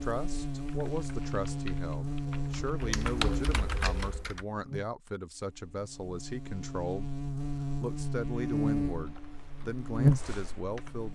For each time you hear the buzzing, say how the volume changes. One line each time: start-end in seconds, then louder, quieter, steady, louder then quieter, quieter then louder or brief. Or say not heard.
0.0-11.0 quieter then louder.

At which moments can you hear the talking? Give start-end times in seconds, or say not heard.
0.0-7.1, 7.8-11.0.